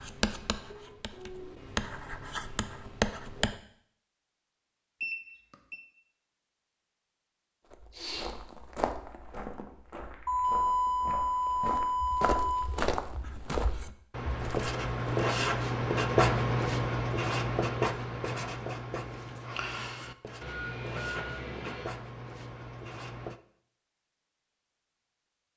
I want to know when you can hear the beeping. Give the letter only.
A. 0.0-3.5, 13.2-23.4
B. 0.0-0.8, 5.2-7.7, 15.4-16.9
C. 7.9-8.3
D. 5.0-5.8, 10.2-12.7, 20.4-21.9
D.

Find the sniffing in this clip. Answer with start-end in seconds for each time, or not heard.
7.9-8.3.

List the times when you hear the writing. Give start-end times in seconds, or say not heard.
0.0-3.5, 13.2-23.4.